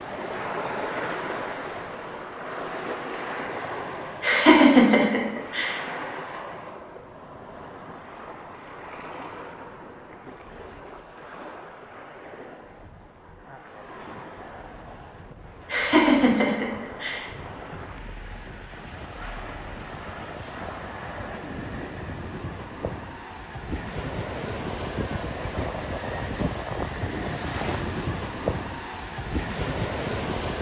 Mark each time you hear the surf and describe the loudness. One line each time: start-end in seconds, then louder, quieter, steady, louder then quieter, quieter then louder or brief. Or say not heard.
0.0-30.5 quieter then louder.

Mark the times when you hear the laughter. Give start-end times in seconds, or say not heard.
4.2-5.8, 15.7-17.2.